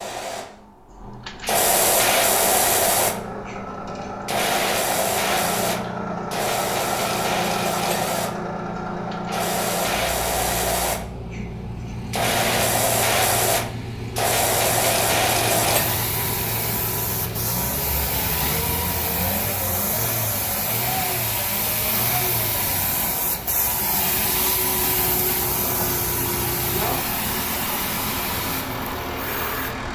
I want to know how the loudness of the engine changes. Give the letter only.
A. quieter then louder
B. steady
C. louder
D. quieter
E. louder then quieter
B.